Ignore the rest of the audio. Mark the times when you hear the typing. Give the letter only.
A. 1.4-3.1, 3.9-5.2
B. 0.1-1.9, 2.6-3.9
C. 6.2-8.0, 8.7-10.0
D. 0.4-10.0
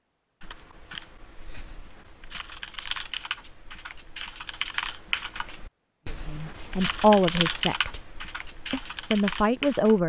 D.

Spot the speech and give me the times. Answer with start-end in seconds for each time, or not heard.
6.2-8.0, 8.7-10.0.